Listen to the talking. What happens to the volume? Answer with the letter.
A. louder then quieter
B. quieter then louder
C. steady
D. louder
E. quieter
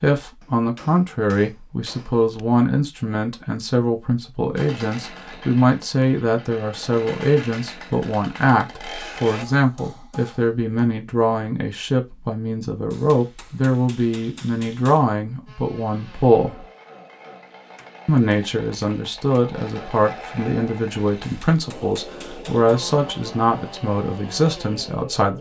C.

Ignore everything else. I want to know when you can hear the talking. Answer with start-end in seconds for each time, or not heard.
0.0-16.6, 18.1-25.3.